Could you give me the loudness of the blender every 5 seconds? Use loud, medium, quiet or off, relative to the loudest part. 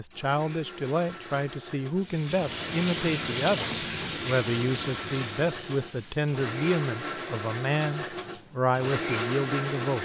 medium, loud.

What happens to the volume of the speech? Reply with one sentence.
The volume of the speech stays about the same.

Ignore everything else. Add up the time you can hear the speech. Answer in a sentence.
You can hear the speech for 10 seconds altogether.